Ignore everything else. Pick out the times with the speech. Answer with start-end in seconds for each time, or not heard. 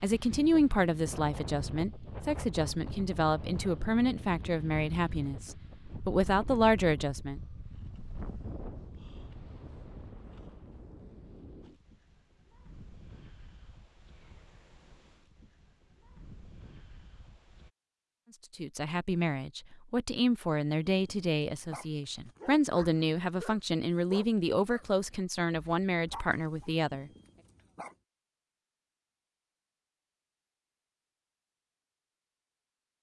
0.0-7.4, 18.6-27.1.